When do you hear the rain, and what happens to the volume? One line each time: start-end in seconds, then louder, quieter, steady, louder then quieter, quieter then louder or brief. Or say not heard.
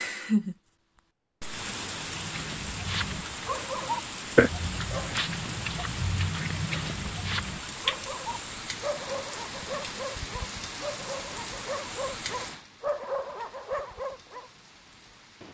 0.0-15.4 quieter.